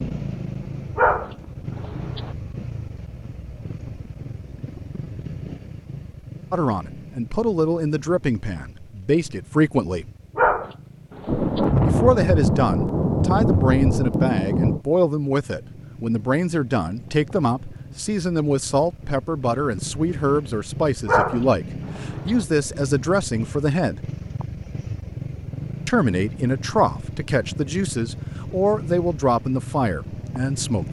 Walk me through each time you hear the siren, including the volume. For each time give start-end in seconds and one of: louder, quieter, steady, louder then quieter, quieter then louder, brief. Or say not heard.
not heard.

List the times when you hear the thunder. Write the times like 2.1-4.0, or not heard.
11.2-14.8.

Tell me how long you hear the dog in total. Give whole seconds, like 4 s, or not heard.
4 s.